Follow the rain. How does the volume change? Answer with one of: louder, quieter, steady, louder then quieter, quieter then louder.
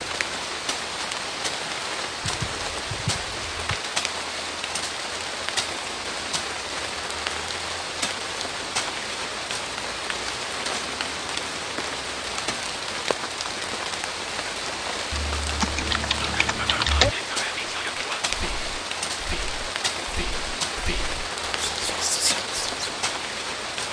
steady.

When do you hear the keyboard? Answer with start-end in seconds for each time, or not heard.
2.2-3.8, 15.1-17.1.